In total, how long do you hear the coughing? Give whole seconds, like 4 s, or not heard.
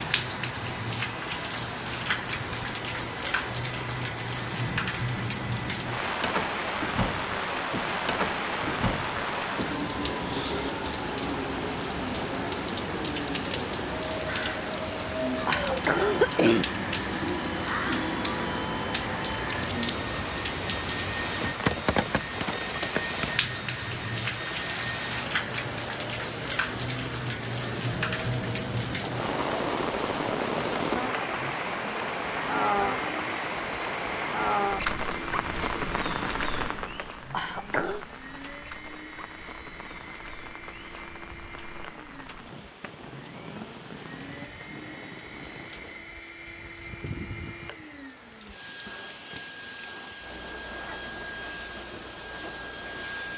2 s.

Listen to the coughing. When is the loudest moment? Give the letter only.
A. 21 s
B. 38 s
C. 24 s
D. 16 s
D.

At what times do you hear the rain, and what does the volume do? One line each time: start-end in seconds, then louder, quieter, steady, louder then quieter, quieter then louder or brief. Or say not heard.
0.0-53.3 quieter.